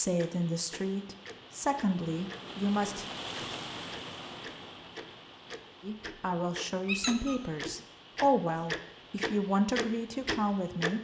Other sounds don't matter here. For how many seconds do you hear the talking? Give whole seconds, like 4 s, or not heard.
8 s.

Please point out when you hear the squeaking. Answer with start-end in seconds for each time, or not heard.
6.8-7.4.